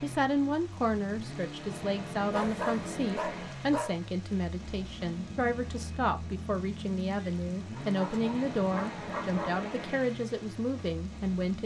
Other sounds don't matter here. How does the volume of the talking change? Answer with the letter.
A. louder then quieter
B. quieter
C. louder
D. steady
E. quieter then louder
D.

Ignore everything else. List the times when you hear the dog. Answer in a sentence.
The dog can be heard from 2.3 to 4.0 s and from 7.8 to 9.7 s.